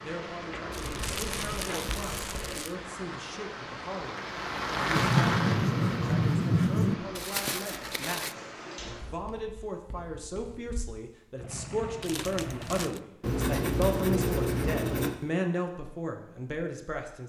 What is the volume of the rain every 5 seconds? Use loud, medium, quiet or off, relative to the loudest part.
loud, loud, off, off.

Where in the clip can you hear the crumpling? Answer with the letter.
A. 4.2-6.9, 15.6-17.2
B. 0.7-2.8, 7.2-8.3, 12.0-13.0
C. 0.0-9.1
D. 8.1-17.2
B.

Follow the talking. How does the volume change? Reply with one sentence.
The loudness of the talking goes up.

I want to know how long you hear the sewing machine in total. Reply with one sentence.
You can hear the sewing machine for 4 seconds altogether.